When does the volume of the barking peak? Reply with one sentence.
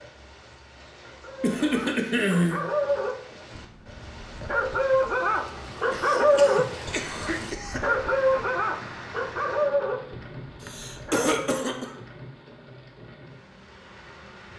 The loudest moment of the barking is at 6 seconds.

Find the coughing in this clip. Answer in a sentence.
You can hear the coughing from 1.4 to 2.6 s, from 5.9 to 7.9 s and from 10.6 to 11.9 s.